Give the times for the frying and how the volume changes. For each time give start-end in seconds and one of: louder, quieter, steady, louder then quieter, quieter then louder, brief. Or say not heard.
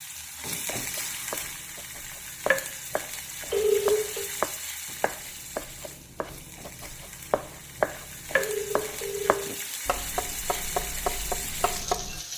0.0-12.3 quieter then louder.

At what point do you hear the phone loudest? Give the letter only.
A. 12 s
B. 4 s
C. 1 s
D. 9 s
B.